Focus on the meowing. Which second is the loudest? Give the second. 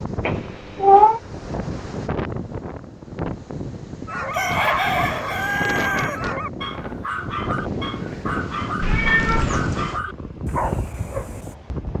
1 s.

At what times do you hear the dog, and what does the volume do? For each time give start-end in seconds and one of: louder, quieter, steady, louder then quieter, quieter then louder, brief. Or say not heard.
4.0-11.6 steady.